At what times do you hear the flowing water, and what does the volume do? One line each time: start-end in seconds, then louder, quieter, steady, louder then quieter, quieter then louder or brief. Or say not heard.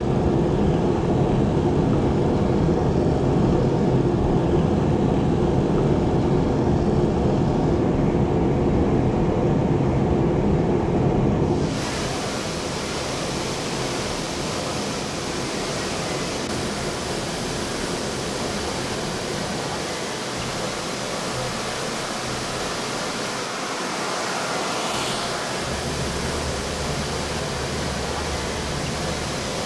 0.0-29.6 louder.